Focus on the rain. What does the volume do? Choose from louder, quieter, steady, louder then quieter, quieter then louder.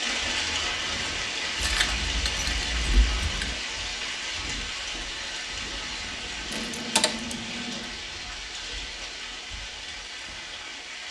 quieter.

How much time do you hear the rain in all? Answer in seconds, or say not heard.
11 s.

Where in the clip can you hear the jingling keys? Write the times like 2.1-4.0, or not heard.
1.6-3.5, 6.5-7.9.